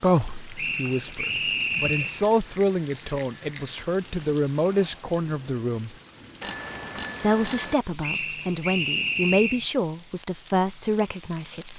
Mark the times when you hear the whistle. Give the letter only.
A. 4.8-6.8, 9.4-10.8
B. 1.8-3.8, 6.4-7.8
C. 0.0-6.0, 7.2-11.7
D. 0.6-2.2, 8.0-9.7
D.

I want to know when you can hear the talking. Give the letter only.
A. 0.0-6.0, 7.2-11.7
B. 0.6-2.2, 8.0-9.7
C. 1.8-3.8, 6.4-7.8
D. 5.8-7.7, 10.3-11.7
A.